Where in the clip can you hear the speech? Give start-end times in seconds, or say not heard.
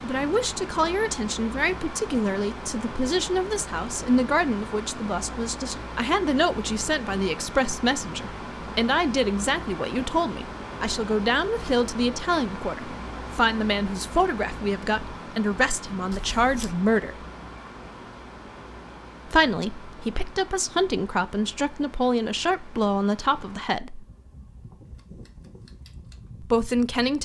0.0-17.2, 19.2-24.1, 26.4-27.2.